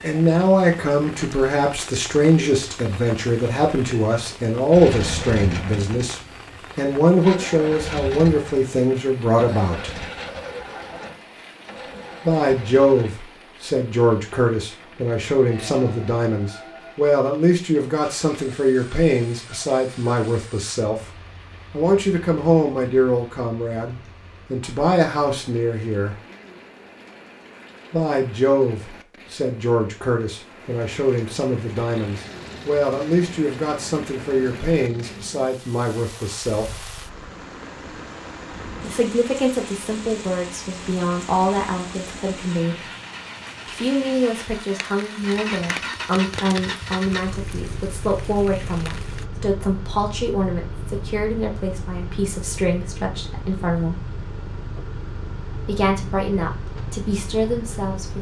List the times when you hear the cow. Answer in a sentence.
The cow can't be heard in this clip.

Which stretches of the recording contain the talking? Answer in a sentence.
You can hear the talking from 0.0 to 9.9 s, from 12.2 to 26.1 s, from 27.9 to 36.9 s, from 38.8 to 42.9 s, from 43.6 to 54.0 s and from 55.6 to 58.1 s.